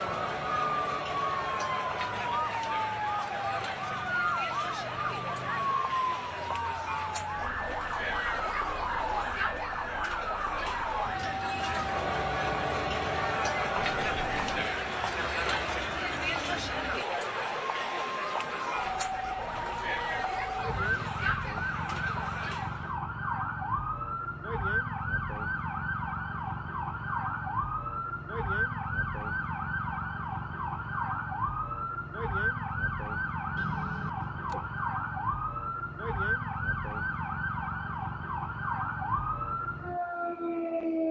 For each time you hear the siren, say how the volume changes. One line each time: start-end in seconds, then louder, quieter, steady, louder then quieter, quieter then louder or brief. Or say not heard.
0.0-41.0 steady.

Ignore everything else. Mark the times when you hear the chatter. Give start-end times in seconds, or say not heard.
0.0-22.9.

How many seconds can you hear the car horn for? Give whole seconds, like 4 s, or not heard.
2 s.